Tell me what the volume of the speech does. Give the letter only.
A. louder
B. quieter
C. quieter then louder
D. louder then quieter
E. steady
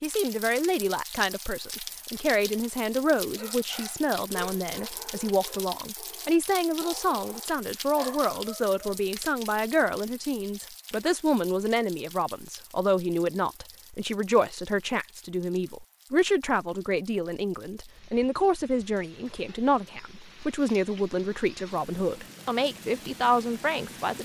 E.